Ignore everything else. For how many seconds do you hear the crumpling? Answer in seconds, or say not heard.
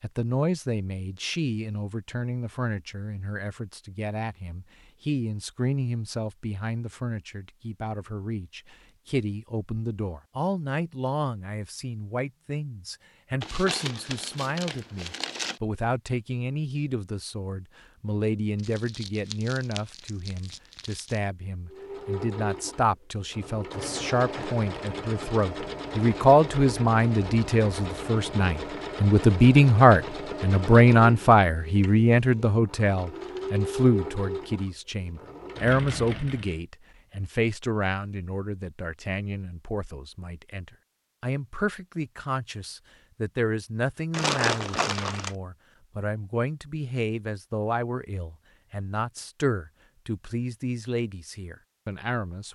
6 s.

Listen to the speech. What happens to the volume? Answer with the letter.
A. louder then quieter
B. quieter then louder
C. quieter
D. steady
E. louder
A.